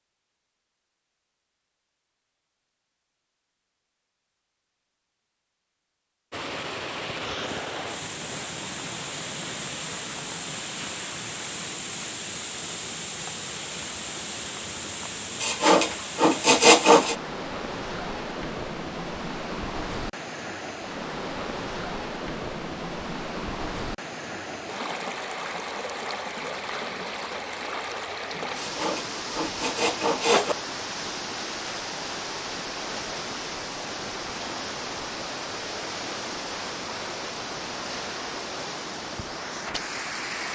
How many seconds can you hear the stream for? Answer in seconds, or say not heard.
34 s.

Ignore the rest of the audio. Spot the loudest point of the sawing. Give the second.
17 s.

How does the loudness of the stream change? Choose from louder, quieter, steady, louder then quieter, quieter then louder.
steady.